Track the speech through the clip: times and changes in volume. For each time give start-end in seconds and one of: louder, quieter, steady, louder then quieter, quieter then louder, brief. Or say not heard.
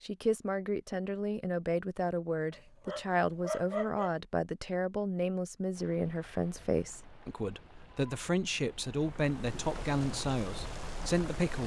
0.0-11.6 steady.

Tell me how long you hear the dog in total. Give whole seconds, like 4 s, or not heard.
2 s.